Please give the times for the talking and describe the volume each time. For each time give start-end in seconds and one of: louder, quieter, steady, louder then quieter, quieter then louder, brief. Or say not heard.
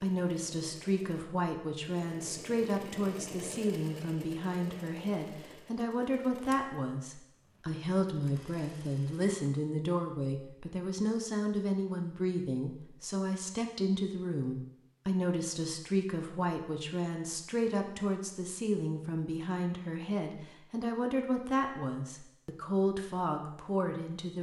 0.0-24.3 steady.